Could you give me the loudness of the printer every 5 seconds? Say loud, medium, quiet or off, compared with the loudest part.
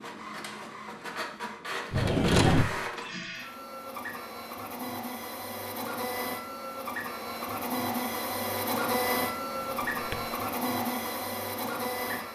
medium, loud, loud.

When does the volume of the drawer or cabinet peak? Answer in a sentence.
The loudest moment of the drawer or cabinet is at 2 seconds.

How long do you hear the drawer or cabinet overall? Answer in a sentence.
The drawer or cabinet can be heard for 2 seconds in total.